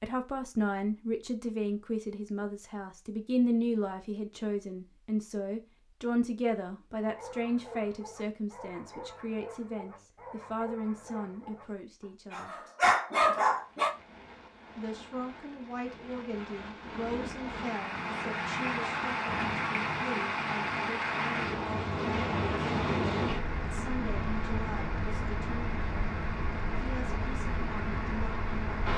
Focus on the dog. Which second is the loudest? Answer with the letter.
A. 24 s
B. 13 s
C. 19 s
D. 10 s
B.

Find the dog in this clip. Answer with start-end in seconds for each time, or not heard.
7.0-13.9.